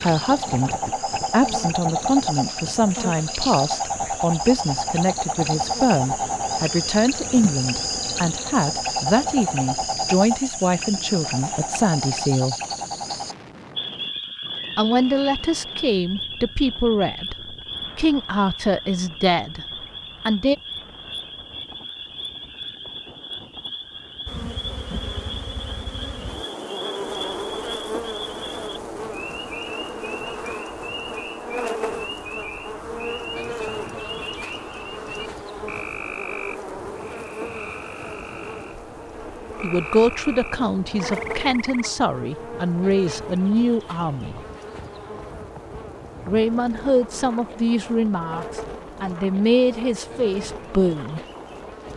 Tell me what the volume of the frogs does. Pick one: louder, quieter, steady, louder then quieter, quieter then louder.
quieter.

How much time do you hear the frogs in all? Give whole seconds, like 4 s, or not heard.
42 s.